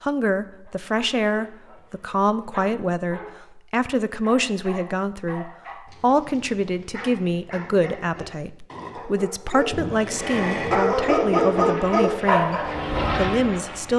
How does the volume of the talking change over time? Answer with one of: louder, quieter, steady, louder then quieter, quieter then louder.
steady.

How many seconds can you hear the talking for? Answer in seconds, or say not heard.
14 s.